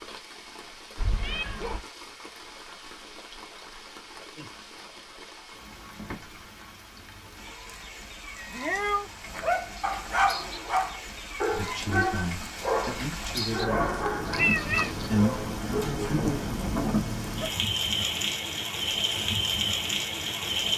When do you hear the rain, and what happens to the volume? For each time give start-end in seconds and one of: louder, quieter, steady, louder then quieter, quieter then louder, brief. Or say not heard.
0.0-20.7 louder.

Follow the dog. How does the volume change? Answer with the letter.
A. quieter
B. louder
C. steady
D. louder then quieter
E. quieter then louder
A.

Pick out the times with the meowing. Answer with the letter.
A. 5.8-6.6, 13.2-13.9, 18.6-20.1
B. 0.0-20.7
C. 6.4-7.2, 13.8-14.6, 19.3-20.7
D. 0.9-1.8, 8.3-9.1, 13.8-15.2
D.